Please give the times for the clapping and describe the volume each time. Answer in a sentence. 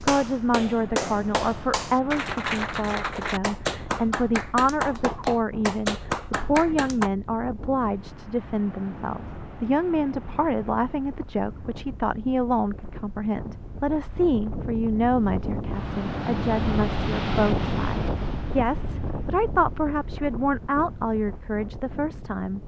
The clapping can be heard from 0.0 to 7.1 s, at a steady volume.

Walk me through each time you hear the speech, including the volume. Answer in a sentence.
You can hear the speech from 0.0 to 22.6 s, at a steady volume.